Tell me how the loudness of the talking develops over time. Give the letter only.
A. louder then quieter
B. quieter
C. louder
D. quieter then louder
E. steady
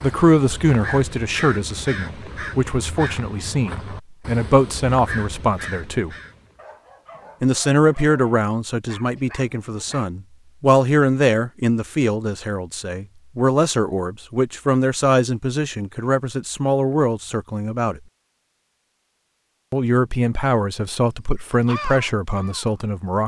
E.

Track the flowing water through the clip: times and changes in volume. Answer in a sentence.
You can't hear the flowing water here.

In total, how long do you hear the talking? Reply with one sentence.
The talking can be heard for 20 seconds in total.